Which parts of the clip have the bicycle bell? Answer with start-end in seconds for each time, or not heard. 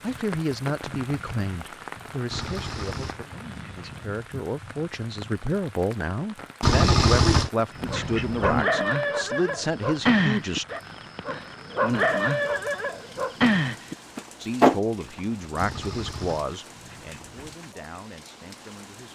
not heard.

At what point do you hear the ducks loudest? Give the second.
7 s.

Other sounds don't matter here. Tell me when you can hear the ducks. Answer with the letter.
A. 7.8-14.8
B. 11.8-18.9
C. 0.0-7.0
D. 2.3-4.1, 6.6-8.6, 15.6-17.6
D.